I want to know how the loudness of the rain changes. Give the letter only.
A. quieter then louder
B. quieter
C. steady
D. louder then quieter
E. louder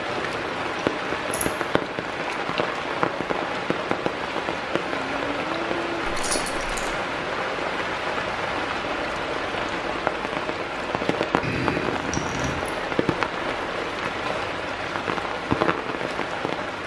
C.